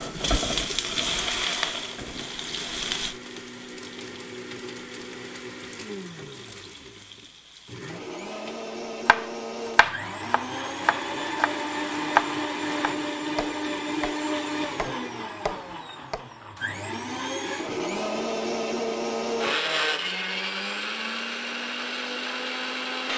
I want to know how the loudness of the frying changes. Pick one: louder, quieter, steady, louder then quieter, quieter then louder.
quieter.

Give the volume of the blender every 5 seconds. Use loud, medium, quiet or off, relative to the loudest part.
medium, medium, loud, loud, loud.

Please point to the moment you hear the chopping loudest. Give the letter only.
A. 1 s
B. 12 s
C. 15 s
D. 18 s
B.